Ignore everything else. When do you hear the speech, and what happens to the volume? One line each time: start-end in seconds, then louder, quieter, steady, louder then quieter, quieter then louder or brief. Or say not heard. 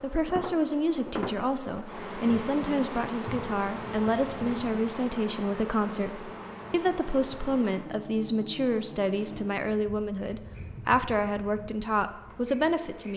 0.0-13.1 steady.